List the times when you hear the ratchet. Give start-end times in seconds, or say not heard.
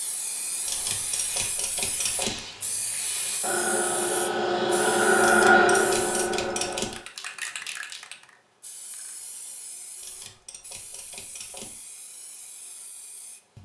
0.7-2.4, 5.2-7.0, 10.0-11.8.